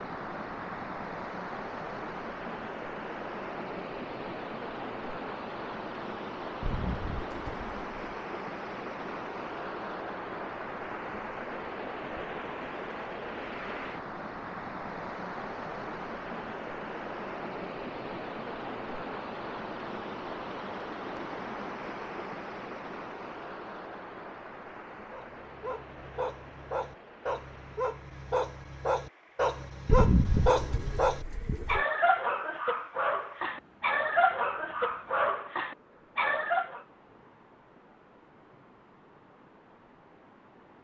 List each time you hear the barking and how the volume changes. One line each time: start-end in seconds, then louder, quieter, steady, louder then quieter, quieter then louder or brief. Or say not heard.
25.1-36.8 louder.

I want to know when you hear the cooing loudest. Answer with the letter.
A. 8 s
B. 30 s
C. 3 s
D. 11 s
B.